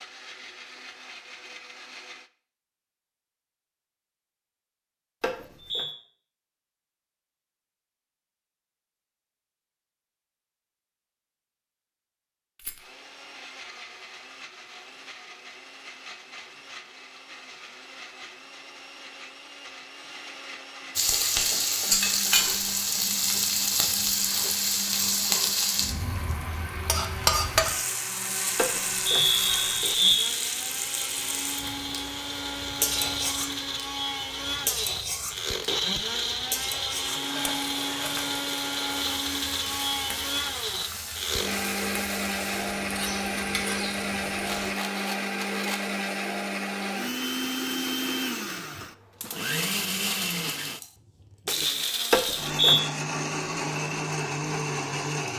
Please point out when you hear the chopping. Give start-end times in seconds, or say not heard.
not heard.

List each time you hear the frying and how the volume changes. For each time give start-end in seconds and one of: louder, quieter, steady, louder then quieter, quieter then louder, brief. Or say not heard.
20.9-44.8 quieter.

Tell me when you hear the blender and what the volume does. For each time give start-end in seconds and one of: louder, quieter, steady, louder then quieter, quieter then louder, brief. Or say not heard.
0.0-2.3 brief
12.8-55.3 louder.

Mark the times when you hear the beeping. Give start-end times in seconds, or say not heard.
5.2-5.9, 28.6-30.3, 52.1-52.8.